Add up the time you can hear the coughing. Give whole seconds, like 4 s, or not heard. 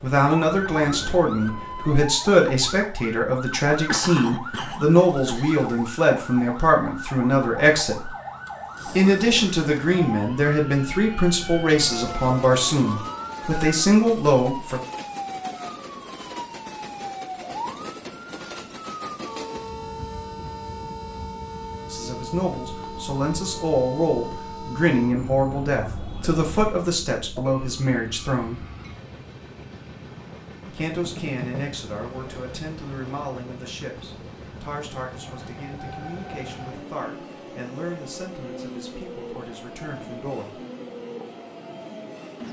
2 s.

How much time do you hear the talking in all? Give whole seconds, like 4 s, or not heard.
31 s.